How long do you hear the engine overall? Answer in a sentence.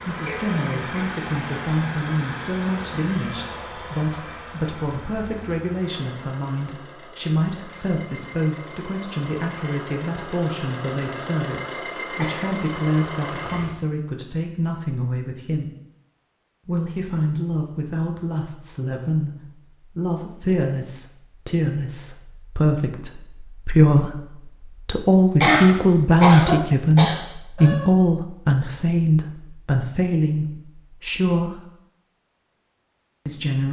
The engine can be heard for 14 seconds in total.